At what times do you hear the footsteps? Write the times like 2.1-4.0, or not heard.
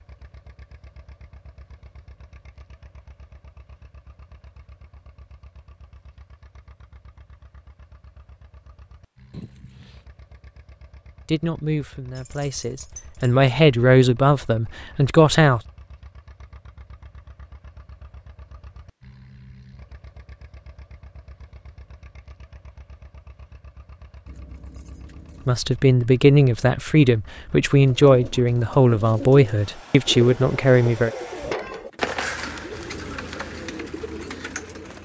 not heard.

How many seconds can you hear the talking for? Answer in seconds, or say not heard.
10 s.